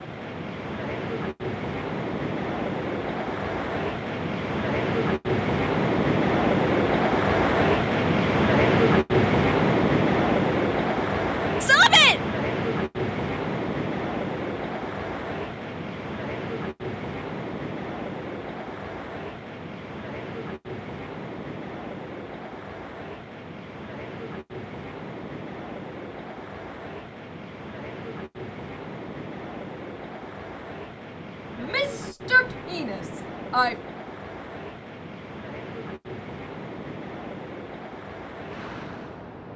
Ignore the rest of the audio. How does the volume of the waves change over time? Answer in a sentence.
The volume of the waves goes down.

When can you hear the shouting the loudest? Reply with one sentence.
The volume of the shouting peaks at 12 seconds.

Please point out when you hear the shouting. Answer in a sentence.
You can hear the shouting from 11.6 to 12.2 s and from 31.6 to 33.8 s.